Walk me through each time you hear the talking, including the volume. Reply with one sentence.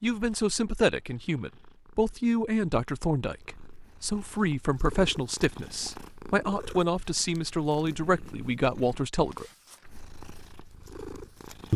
You can hear the talking from 0.0 to 9.4 s, at a steady volume.